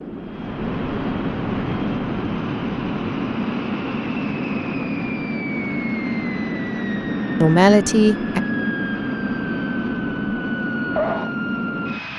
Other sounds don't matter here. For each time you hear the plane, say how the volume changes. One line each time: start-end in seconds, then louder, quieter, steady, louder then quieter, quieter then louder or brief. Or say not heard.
0.0-12.1 steady.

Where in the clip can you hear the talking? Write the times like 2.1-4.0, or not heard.
7.4-8.4.